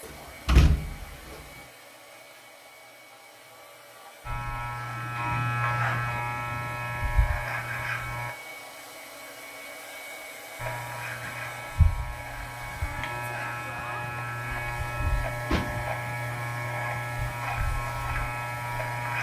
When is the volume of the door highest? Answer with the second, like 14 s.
1 s.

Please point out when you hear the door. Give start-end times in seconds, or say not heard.
0.1-1.4, 15.0-15.9.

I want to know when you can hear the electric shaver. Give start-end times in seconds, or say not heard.
4.2-8.3, 10.6-19.1.